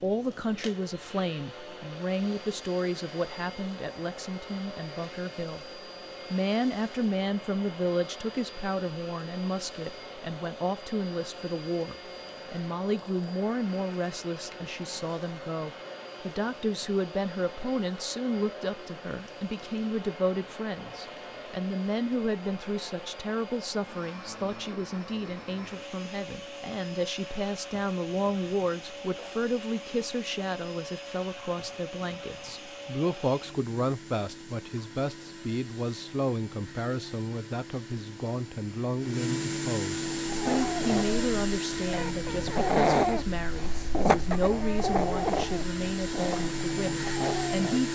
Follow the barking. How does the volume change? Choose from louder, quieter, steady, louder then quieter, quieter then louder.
louder then quieter.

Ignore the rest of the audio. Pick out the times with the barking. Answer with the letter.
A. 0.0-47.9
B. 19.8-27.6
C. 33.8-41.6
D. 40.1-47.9
D.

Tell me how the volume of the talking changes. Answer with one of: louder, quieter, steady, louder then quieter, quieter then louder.
steady.